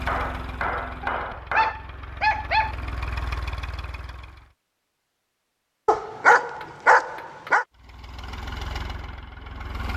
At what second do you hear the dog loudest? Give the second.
6 s.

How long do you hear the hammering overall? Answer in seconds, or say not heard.
3 s.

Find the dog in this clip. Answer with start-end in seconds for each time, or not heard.
1.0-2.8, 5.8-7.7.